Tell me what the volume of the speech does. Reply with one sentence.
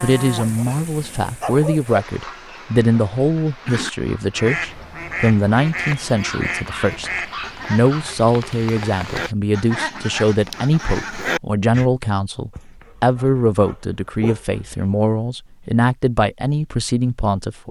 The loudness of the speech stays about the same.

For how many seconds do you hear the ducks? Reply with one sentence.
You can hear the ducks for 8 seconds altogether.